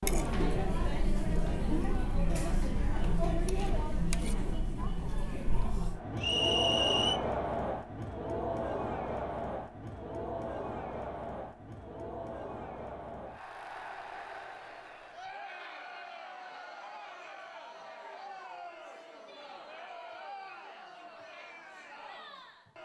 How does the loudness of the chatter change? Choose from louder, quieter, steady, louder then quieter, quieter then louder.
quieter.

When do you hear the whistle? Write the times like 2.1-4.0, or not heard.
6.2-7.2.